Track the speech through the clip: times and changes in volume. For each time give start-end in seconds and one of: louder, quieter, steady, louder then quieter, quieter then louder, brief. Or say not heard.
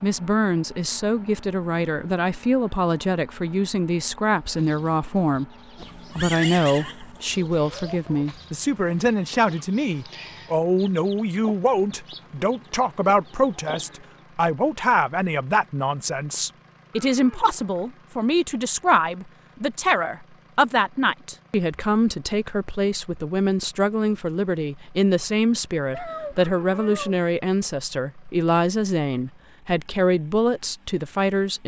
0.0-31.6 steady.